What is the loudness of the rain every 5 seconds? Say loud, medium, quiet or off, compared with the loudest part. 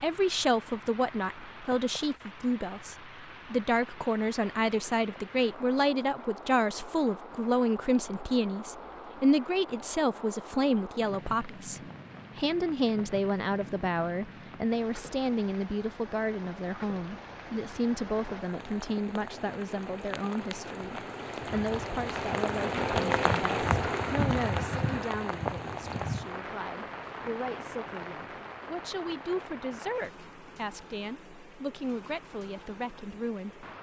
quiet, quiet, quiet, quiet, loud, medium, quiet.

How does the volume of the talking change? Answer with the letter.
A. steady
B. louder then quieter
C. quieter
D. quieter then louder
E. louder
C.